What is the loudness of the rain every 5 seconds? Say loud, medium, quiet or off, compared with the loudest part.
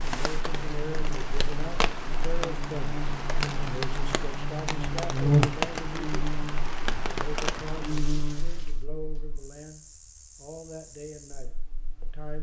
loud, loud, off.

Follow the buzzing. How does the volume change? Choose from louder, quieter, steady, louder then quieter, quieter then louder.
louder then quieter.